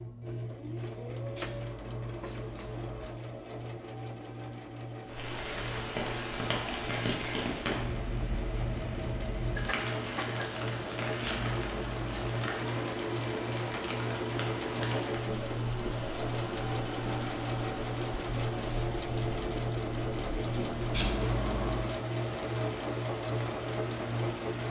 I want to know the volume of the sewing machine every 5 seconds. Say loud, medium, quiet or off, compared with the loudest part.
medium, medium, loud, loud, loud.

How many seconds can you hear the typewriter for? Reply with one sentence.
The typewriter can't be heard in this clip.